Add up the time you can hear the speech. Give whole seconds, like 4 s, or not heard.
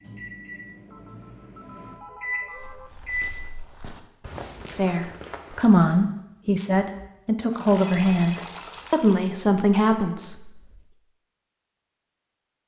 6 s.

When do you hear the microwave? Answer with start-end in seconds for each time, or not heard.
0.0-3.5.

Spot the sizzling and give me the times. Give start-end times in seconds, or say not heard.
not heard.